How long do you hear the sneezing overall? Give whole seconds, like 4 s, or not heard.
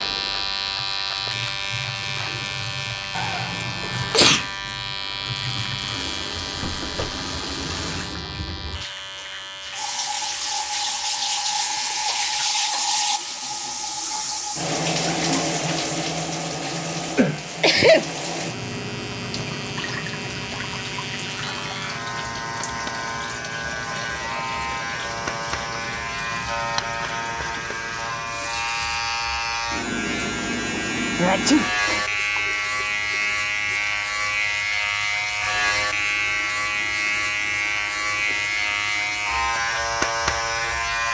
3 s.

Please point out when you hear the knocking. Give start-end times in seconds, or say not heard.
6.6-7.2.